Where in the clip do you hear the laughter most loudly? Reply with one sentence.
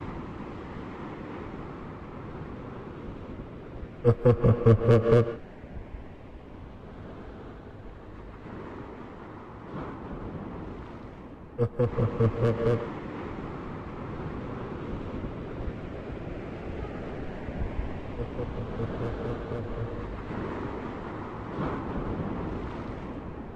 The volume of the laughter peaks at 5 seconds.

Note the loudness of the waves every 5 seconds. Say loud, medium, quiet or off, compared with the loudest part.
medium, medium, loud, loud, loud.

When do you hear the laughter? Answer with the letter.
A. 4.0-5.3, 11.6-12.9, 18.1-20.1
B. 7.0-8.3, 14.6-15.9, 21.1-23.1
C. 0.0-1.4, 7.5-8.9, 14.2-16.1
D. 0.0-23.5
A.